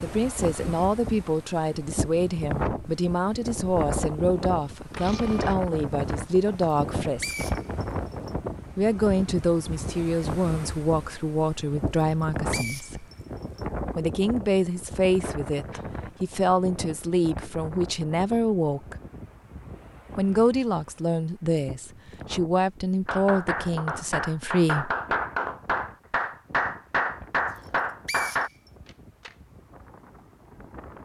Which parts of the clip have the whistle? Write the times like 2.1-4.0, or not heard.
6.8-8.3, 12.0-13.7, 27.6-28.7.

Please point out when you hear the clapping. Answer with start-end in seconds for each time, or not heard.
23.1-28.5.